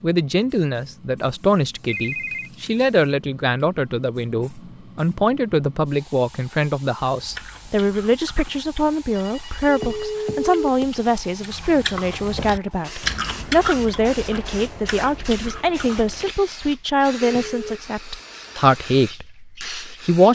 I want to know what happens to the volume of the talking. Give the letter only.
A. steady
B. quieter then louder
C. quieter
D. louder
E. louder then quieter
A.